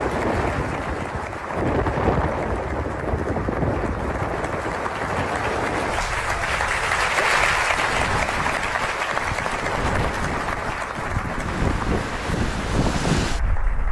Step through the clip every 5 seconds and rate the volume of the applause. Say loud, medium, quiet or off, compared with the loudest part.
medium, loud, medium.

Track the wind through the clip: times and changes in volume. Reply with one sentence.
The wind can be heard from 0.0 to 13.8 s, getting quieter then louder.